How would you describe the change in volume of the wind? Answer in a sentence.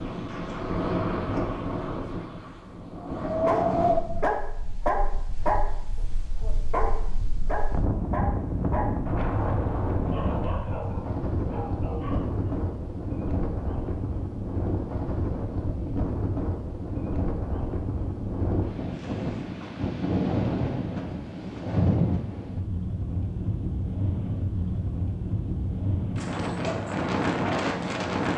The loudness of the wind stays about the same.